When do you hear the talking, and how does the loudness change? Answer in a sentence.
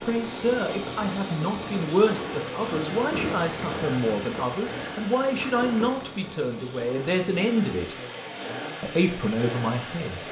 You can hear the talking from 0.0 to 8.0 s, at a steady volume; and briefly from 8.8 to 10.2 s.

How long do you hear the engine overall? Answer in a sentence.
You can hear the engine for 10 seconds altogether.